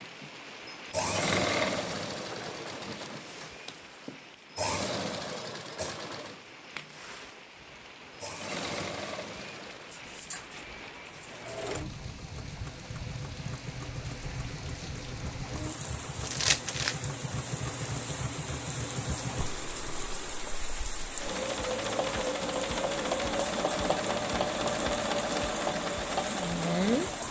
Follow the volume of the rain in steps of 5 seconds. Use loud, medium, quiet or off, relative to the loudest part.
medium, medium, medium, loud, loud, loud.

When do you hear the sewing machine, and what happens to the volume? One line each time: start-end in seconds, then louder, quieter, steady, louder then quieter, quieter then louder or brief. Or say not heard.
0.0-27.2 quieter then louder.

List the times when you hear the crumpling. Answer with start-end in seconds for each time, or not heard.
16.2-16.9.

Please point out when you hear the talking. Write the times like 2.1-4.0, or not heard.
not heard.